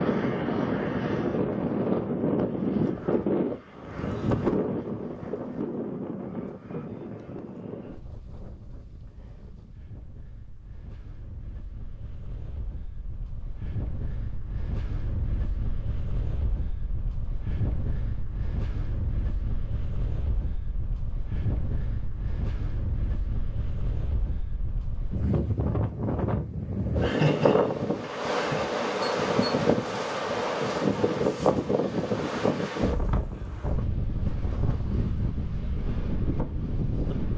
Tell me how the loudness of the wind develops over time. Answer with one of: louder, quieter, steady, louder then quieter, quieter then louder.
quieter then louder.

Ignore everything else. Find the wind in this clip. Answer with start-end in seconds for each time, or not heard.
0.0-37.3.